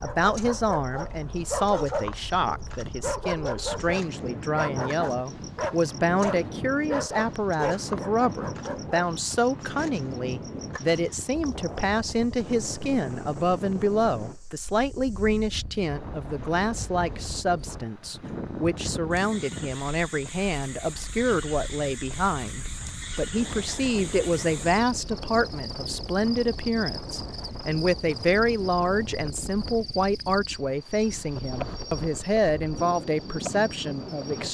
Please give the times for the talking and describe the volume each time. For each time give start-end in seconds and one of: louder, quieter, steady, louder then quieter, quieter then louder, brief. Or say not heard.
0.0-34.5 steady.